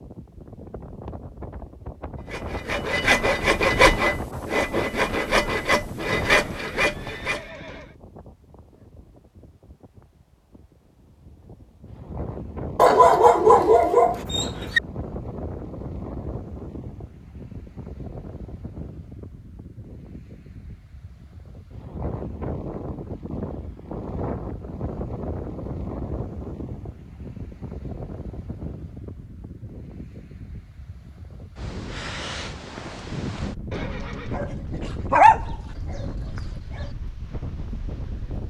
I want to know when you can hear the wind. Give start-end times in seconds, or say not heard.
0.0-38.4.